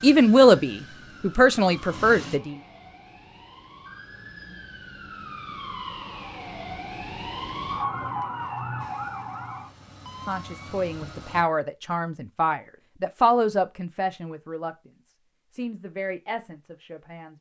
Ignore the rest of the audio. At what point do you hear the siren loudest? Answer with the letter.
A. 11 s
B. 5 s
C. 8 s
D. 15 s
C.